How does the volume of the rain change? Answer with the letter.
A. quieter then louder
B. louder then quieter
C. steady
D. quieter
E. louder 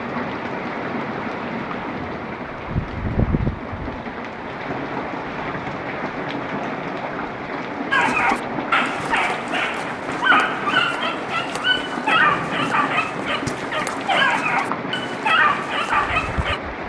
C.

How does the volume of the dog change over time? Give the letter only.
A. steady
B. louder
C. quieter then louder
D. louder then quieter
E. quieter
A.